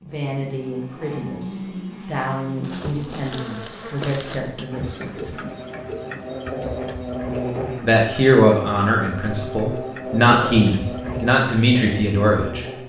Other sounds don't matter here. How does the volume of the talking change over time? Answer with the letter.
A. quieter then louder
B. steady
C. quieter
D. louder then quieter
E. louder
E.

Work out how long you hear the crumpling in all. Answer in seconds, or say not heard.
2 s.